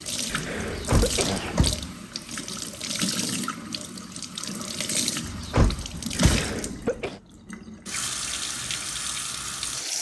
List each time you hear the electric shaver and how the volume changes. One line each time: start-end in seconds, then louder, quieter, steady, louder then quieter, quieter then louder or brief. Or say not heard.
not heard.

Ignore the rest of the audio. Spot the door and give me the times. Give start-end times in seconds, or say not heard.
0.6-1.9, 5.2-6.5.